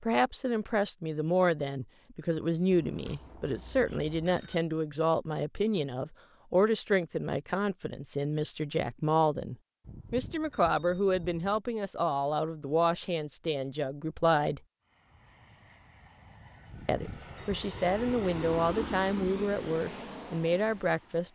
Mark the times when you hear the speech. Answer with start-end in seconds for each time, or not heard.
0.0-14.6, 16.9-21.3.